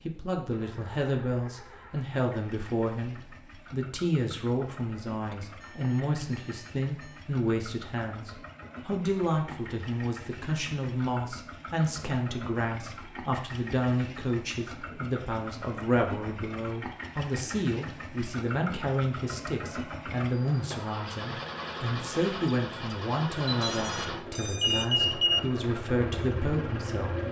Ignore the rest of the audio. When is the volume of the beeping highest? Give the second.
25 s.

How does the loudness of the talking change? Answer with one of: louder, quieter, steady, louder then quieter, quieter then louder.
steady.